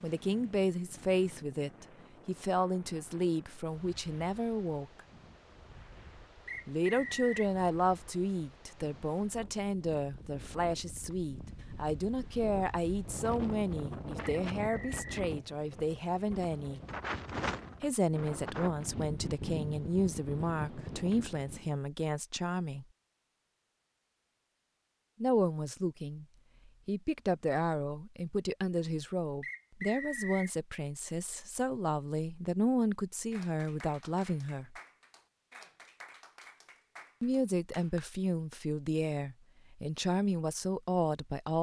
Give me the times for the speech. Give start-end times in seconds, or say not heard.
0.0-5.0, 6.7-16.8, 17.8-22.9, 25.2-34.8, 37.2-41.5.